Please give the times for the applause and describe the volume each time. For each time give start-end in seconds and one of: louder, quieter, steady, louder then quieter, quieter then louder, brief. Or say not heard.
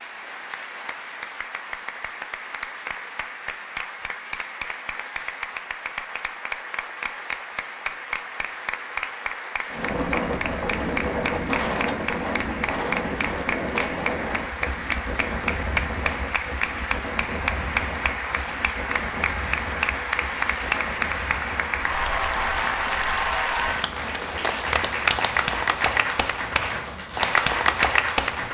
0.0-28.4 louder.